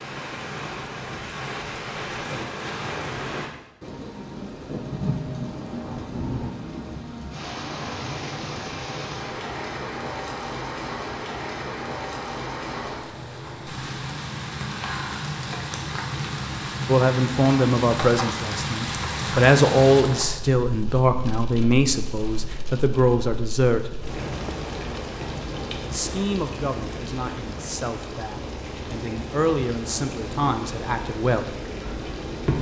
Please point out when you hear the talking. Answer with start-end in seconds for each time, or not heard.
16.9-23.9, 25.9-31.6.